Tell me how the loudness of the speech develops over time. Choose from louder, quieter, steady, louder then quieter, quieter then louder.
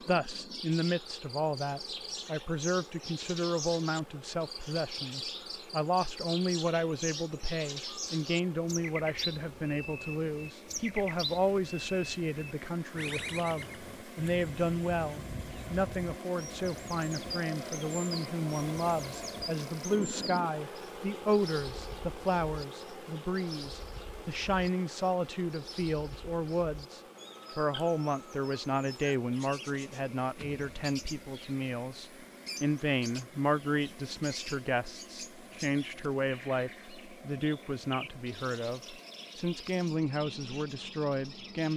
steady.